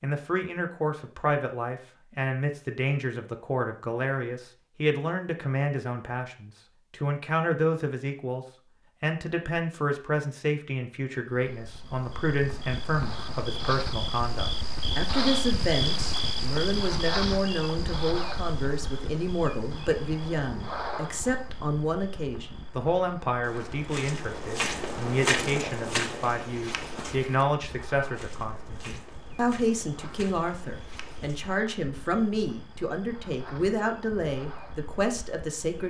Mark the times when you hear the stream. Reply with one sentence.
The stream can't be heard in this clip.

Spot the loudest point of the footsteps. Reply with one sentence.
The volume of the footsteps peaks at 25 seconds.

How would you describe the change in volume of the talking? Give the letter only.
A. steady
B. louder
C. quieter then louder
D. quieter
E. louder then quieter
A.